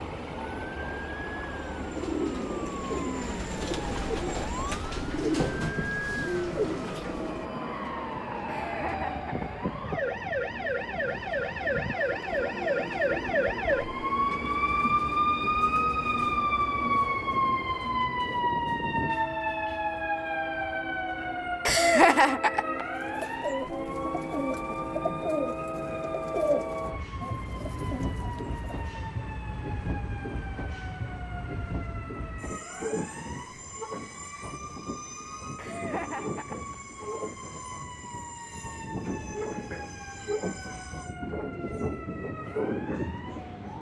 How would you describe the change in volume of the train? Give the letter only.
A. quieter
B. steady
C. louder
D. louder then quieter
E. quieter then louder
B.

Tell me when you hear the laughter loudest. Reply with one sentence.
The volume of the laughter peaks at 22 seconds.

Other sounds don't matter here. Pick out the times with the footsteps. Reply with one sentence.
The footsteps can't be heard in this clip.